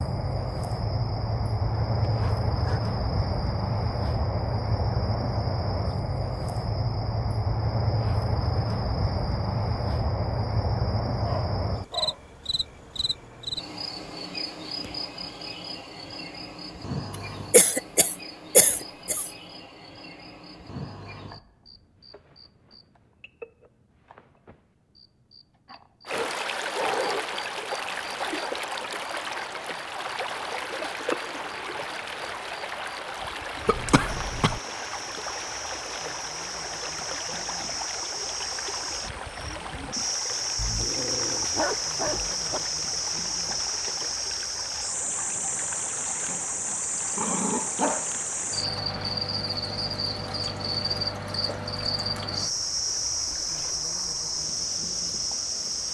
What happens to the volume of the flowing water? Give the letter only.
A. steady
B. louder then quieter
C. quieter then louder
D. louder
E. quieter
E.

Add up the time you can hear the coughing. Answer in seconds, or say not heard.
3 s.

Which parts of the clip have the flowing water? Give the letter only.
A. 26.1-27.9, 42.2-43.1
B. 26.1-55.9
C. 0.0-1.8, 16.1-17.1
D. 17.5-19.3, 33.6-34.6
B.